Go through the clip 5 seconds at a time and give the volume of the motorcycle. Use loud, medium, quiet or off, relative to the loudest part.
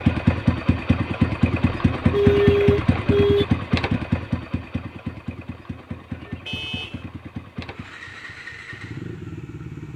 loud, quiet.